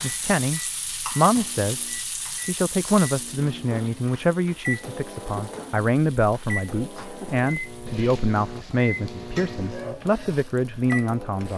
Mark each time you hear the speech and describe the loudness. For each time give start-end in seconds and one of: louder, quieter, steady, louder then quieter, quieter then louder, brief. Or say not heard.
0.0-11.5 steady.